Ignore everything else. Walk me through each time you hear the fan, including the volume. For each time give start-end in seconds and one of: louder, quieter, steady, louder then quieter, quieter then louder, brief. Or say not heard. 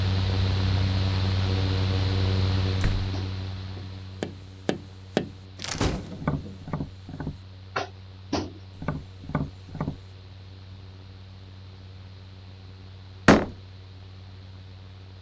0.0-15.1 quieter.